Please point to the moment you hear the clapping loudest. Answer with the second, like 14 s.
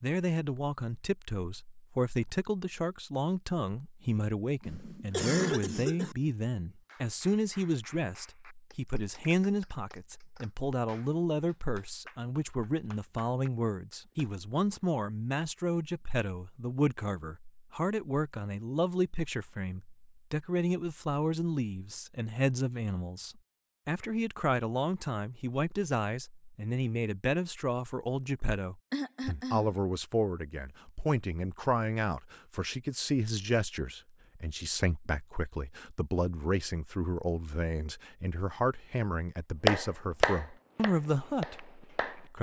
40 s.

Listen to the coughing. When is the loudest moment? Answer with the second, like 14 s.
5 s.